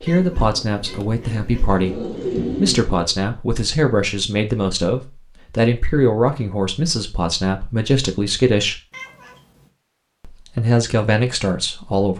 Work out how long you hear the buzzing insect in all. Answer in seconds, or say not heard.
not heard.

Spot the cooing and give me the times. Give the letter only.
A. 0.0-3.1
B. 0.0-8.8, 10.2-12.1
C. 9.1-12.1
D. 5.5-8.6
A.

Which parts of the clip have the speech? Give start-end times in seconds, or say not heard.
0.0-8.8, 10.2-12.1.